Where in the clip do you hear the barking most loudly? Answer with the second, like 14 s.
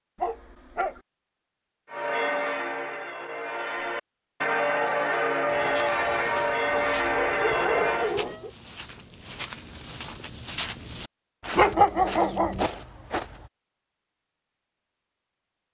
12 s.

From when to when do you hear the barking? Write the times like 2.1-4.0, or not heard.
0.1-1.0, 6.7-8.5, 11.6-12.7.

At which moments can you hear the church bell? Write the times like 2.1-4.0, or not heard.
1.9-8.2.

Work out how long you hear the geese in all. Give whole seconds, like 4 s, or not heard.
not heard.